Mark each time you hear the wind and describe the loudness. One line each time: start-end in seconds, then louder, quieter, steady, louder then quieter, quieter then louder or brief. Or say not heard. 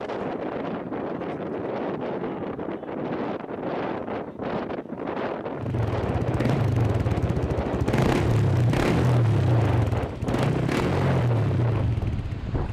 0.0-12.6 steady.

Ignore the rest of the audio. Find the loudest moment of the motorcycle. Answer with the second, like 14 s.
9 s.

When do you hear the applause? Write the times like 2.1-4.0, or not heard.
not heard.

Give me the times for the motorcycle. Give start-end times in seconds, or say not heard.
5.5-12.6.